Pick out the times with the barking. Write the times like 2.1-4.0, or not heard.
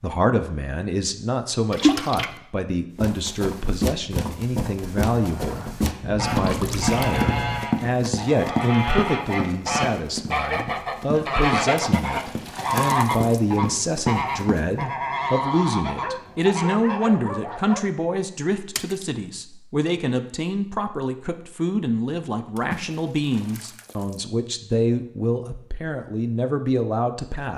6.0-7.7, 15.9-17.8.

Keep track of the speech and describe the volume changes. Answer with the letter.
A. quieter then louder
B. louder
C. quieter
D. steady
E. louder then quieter
D.